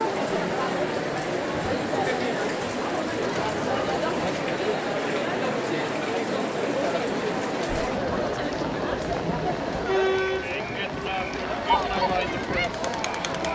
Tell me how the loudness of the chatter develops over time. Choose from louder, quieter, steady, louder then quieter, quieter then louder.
steady.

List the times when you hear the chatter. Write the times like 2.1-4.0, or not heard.
0.0-13.4.